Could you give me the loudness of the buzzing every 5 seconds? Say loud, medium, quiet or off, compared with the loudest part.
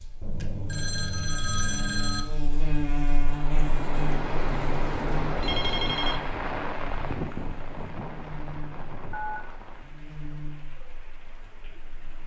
loud, medium, medium.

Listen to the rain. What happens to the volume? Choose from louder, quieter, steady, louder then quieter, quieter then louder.
quieter.